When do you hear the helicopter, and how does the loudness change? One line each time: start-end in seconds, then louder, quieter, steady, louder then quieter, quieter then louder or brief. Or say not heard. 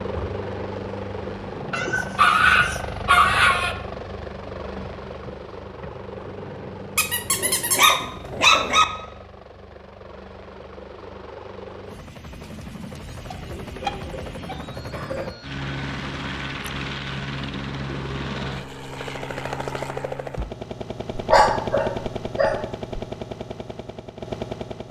0.0-24.8 quieter then louder.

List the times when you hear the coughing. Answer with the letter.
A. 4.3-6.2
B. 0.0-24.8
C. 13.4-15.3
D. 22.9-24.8
C.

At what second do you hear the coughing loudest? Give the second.
15 s.